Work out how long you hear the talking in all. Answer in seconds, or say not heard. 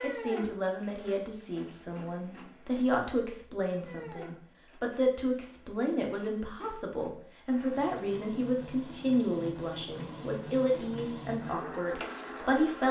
13 s.